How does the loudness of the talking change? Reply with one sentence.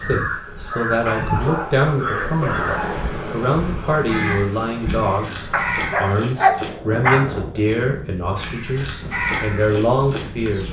The volume of the talking stays about the same.